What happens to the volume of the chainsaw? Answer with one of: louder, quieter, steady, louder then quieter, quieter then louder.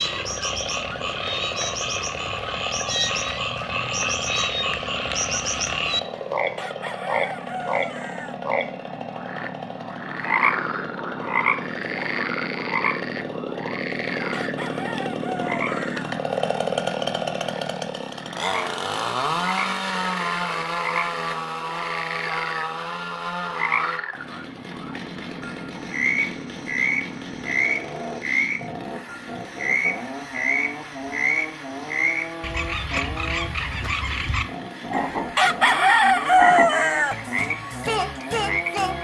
louder then quieter.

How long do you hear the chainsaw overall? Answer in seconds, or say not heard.
39 s.